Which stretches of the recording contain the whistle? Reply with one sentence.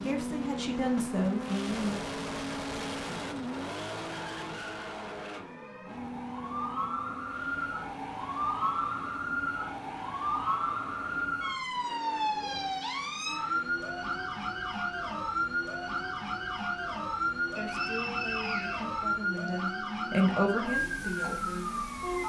The whistle can be heard from 17.6 to 19.5 s.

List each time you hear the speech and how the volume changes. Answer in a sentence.
The speech can be heard briefly from 0.0 to 1.9 s; and from 17.6 to 22.2 s, getting louder then quieter.